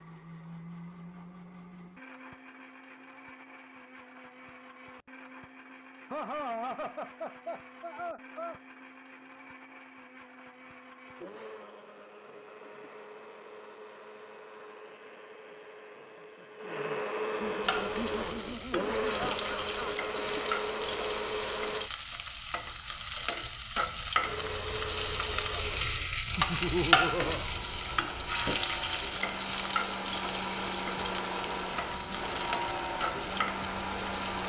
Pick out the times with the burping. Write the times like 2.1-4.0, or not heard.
not heard.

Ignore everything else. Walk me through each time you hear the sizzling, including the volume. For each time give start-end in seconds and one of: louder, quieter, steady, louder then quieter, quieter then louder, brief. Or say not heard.
17.6-34.4 louder then quieter.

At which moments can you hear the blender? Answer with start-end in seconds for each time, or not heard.
0.0-21.9, 24.2-34.4.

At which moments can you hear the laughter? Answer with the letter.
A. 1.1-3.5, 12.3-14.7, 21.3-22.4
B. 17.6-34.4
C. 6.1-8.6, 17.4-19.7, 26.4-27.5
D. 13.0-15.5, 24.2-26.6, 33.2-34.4
C.